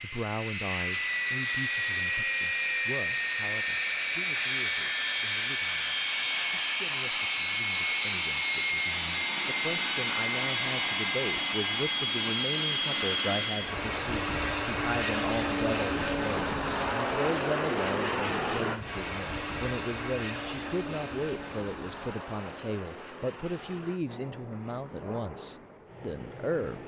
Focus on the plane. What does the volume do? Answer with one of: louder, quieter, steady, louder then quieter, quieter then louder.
quieter.